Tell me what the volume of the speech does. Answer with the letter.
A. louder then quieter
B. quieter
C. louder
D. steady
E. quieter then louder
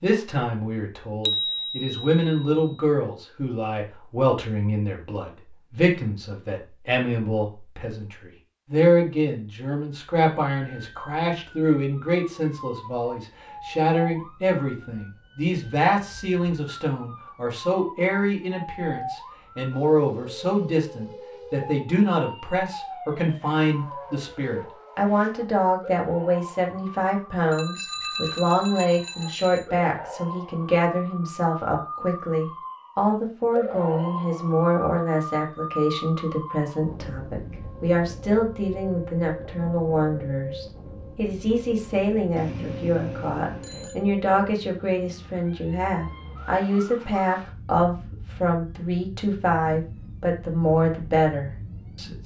D.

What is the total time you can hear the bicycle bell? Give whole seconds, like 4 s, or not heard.
5 s.